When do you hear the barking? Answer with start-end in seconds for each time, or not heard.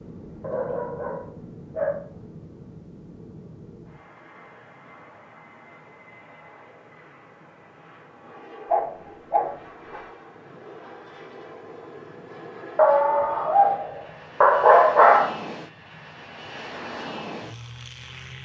0.4-2.0, 8.7-10.0, 12.8-15.3.